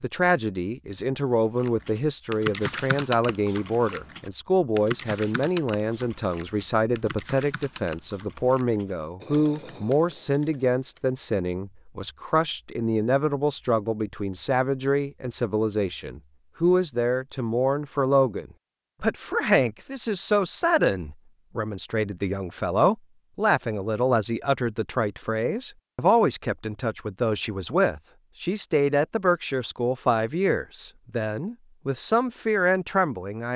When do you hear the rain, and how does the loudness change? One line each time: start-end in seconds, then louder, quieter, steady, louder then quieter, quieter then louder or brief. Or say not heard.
not heard.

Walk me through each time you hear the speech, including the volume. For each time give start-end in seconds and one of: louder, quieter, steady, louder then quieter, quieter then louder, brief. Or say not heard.
0.0-33.5 steady.